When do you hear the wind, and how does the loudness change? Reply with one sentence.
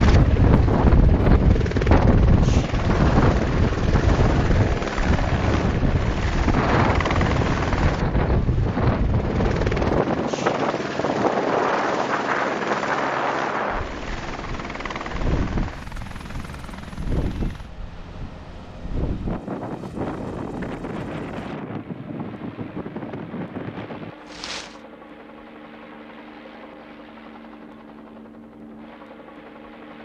You can hear the wind from 0.0 to 24.8 s, getting quieter.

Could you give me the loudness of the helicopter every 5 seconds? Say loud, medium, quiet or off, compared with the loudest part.
loud, loud, loud, medium, quiet, quiet.